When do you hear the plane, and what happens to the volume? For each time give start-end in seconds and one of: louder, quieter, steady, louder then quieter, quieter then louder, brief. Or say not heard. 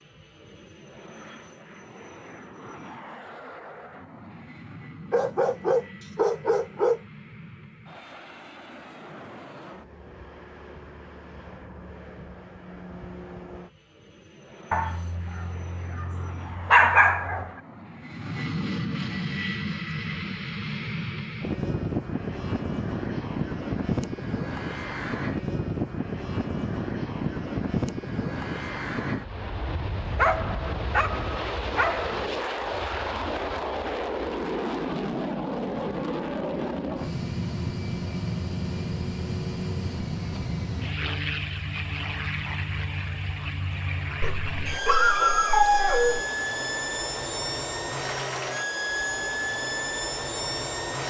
0.0-51.0 louder.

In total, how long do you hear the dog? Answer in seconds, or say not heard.
9 s.